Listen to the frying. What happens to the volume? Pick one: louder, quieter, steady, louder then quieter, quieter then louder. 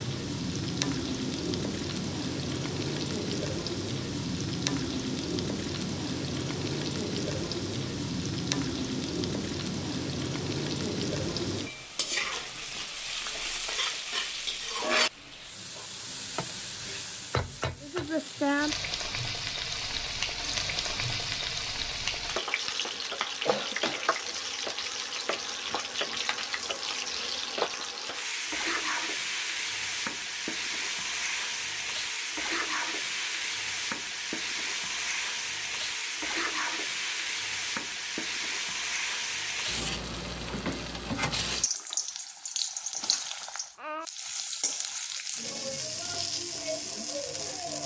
steady.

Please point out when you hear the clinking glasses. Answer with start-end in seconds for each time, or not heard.
43.0-44.1.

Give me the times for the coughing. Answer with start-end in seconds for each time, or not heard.
22.7-24.1.